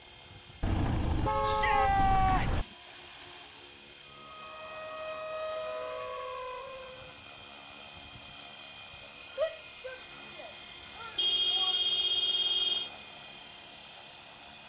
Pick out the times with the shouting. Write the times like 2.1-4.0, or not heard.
1.4-2.6, 9.3-11.8.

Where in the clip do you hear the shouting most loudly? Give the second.
2 s.